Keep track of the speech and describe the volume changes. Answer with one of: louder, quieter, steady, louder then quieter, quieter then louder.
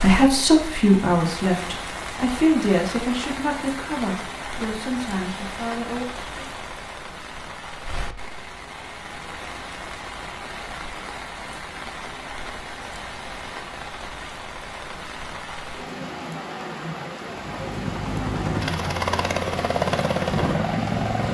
quieter.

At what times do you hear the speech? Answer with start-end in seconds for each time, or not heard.
0.0-6.5.